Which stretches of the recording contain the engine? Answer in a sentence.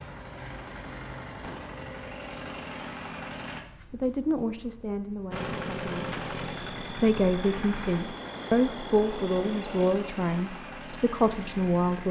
You can hear the engine from 0.0 to 3.6 s and from 5.3 to 12.0 s.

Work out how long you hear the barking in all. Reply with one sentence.
You can't hear the barking here.